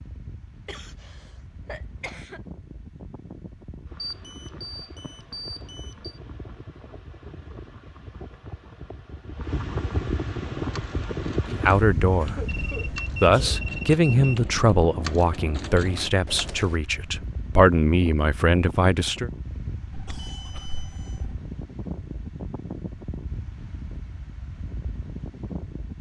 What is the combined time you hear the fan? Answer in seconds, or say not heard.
26 s.